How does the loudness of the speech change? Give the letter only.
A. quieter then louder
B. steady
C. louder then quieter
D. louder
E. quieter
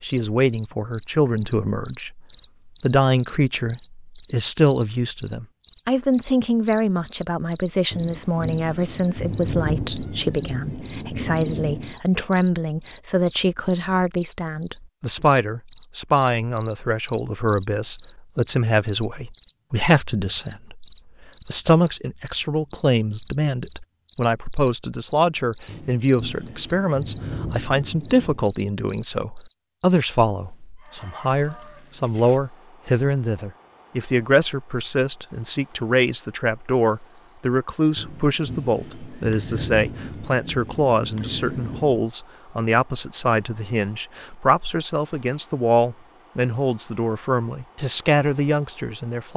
B.